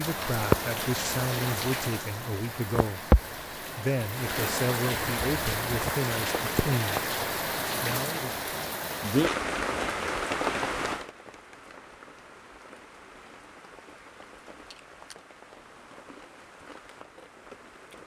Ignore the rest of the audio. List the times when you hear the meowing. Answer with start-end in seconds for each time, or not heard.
not heard.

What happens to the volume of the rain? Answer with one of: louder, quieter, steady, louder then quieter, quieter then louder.
quieter.